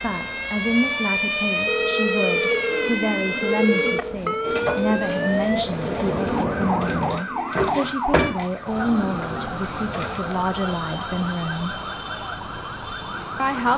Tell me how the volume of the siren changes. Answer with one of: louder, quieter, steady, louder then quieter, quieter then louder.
quieter.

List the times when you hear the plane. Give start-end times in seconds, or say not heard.
0.0-7.2.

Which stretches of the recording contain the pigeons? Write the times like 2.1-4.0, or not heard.
2.6-10.2.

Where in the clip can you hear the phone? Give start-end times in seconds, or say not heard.
1.6-4.2.